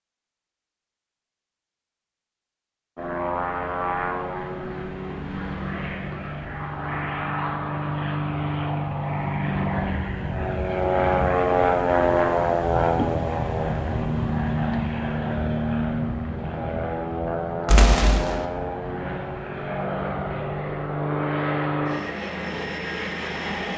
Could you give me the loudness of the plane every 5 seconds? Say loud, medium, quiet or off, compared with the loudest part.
medium, medium, loud, medium, medium.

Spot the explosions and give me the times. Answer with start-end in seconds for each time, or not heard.
17.6-18.4.